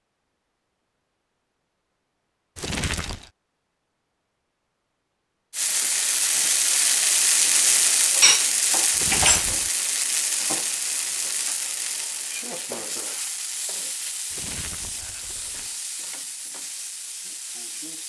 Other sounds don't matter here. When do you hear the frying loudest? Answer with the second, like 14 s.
8 s.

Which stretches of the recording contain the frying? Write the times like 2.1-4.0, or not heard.
5.5-18.0.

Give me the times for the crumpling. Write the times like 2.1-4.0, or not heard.
2.5-3.3, 8.9-9.7, 14.3-15.8.